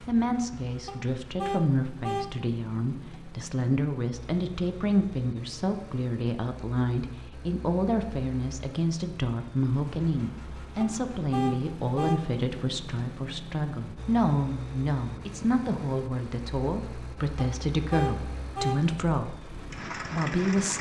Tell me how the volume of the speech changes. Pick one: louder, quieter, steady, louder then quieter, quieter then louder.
steady.